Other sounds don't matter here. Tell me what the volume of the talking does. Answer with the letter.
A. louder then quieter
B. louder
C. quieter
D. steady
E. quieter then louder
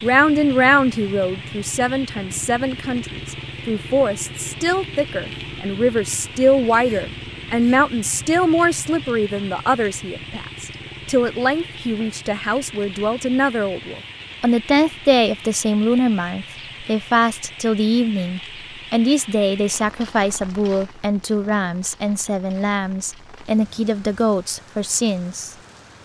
D.